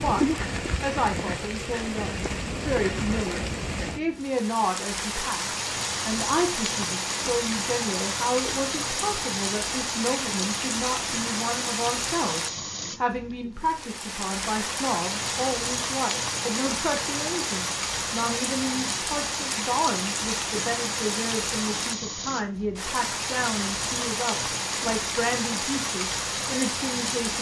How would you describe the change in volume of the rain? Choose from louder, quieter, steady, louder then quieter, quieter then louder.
steady.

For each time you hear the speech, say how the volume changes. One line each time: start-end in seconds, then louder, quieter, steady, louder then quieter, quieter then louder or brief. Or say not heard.
0.0-27.3 steady.